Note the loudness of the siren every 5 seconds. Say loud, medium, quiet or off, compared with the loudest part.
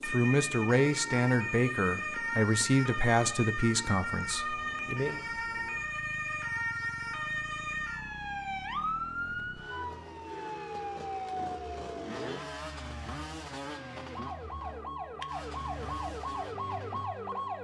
loud, loud, medium, loud.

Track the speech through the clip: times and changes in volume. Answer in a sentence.
The speech can be heard from 0.1 to 5.2 s, getting quieter.